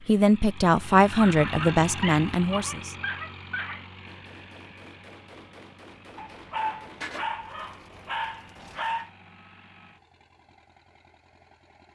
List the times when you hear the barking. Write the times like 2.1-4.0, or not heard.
1.2-3.9, 6.2-9.1.